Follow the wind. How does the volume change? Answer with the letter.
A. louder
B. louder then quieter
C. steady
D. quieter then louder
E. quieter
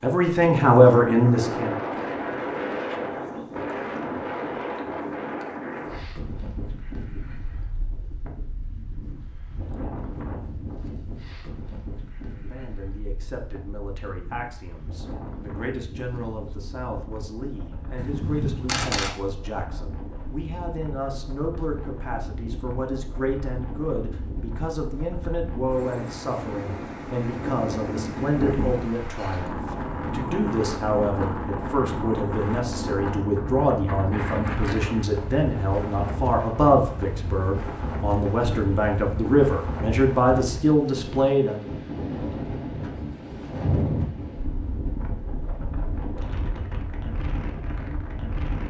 D.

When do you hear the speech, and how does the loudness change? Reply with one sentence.
You can hear the speech briefly from 0.0 to 1.8 s; and from 12.3 to 41.6 s, getting louder.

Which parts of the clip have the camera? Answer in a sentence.
You can hear the camera from 17.9 to 19.1 s.